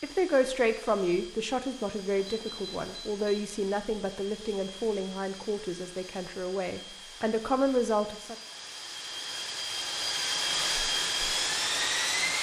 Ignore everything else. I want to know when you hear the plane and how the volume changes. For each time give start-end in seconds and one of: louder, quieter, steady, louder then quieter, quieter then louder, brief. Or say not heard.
0.0-12.3 louder.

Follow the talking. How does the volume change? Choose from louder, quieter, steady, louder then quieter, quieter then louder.
quieter then louder.